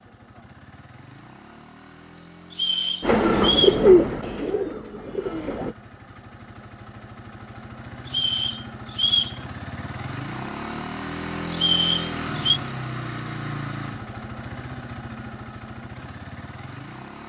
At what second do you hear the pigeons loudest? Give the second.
4 s.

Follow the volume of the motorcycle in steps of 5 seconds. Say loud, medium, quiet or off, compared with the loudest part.
quiet, medium, loud, medium.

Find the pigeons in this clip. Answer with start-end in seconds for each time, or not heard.
3.0-5.8.